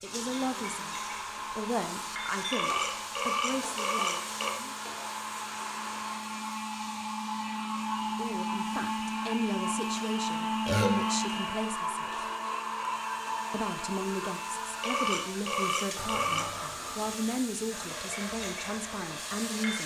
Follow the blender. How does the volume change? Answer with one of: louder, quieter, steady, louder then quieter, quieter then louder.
louder then quieter.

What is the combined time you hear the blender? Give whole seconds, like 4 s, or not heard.
20 s.